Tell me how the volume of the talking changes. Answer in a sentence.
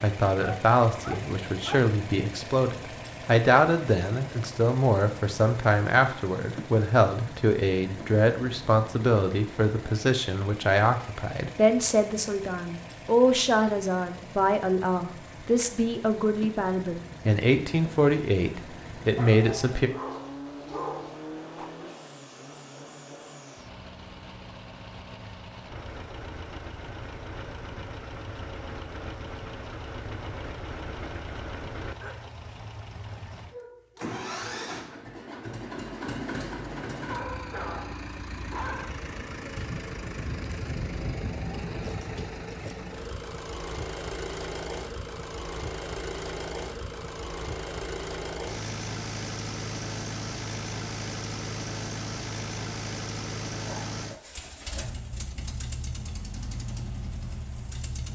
The loudness of the talking stays about the same.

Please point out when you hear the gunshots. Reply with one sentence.
You can't hear the gunshots here.